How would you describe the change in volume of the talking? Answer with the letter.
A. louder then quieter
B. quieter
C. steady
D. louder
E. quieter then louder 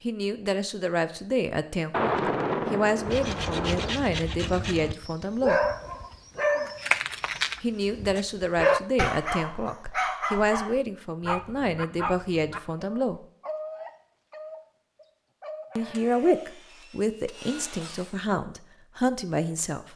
C.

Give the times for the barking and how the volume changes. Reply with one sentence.
You can hear the barking from 5.0 to 16.4 s, getting quieter.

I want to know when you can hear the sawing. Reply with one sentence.
The sawing can be heard from 3.0 to 5.0 s and from 15.9 to 18.2 s.